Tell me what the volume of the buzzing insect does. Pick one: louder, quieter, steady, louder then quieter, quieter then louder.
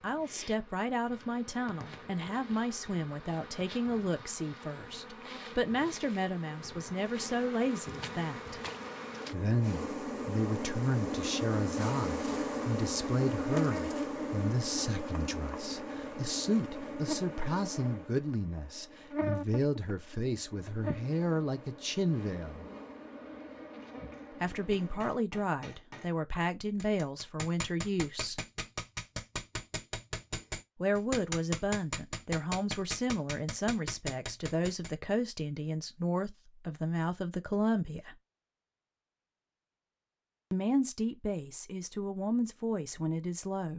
louder then quieter.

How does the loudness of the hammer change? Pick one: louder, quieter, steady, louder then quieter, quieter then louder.
louder.